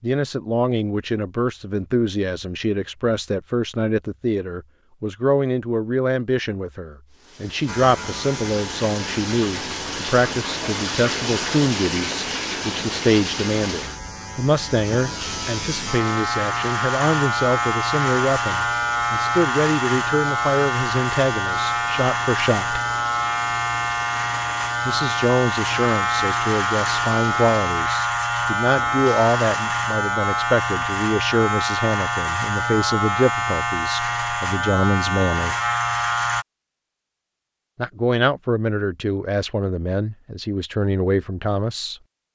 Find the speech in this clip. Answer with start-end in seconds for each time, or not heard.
0.0-22.8, 24.9-35.6, 37.8-42.0.